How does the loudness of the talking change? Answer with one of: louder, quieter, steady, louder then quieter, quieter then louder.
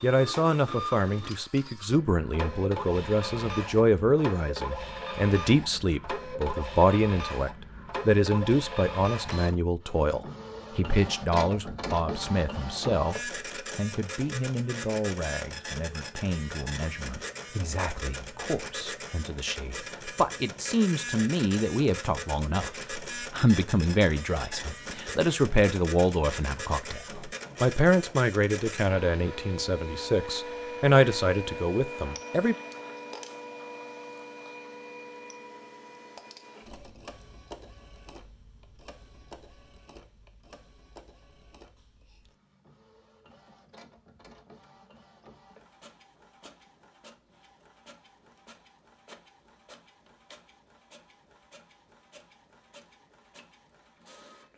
quieter then louder.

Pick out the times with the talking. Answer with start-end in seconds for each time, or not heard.
0.0-32.5.